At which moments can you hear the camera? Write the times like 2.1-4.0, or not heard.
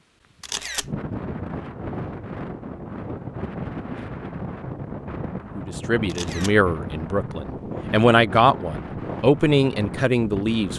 0.4-0.9, 6.0-6.6.